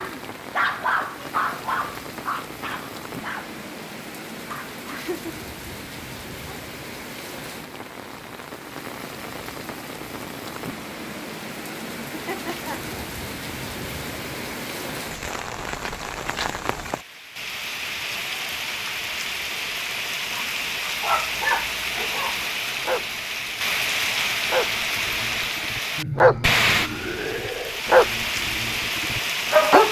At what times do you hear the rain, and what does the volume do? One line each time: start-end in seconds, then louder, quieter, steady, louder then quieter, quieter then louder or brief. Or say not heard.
0.0-29.8 louder.